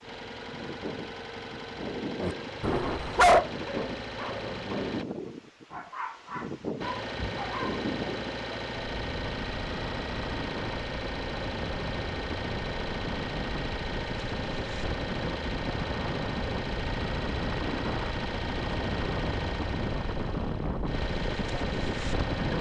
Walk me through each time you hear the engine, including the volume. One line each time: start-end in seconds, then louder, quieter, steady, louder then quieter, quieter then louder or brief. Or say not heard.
0.0-5.0 steady
6.8-22.5 steady.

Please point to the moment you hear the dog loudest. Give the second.
3 s.